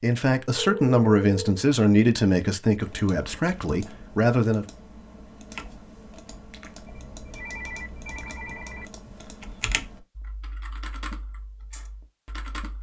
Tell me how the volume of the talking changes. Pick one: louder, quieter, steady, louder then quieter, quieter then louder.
quieter.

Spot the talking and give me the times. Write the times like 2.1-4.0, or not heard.
0.0-4.7.